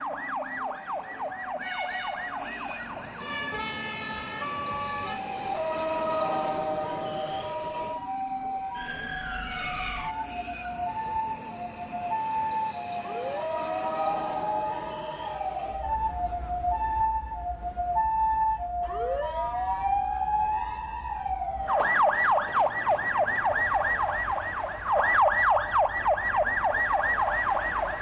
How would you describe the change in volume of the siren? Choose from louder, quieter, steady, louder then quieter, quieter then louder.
louder.